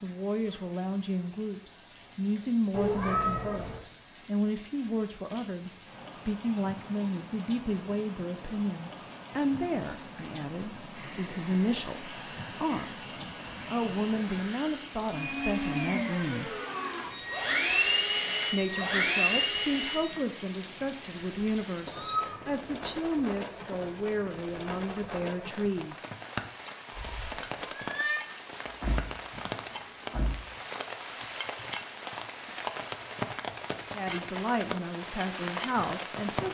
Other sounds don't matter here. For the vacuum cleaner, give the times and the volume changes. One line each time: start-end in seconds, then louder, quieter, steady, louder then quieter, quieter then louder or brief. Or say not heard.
10.9-20.2 louder.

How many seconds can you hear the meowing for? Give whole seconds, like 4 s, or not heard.
3 s.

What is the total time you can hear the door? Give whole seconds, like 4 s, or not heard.
2 s.